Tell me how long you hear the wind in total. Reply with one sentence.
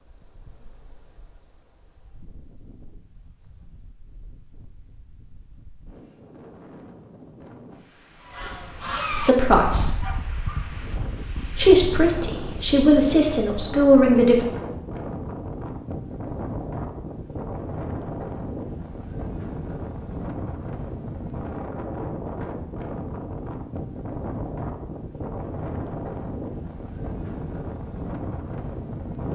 The wind can be heard for 29 seconds in total.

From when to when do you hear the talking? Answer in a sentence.
You can hear the talking from 9.1 to 10.1 s and from 11.5 to 14.4 s.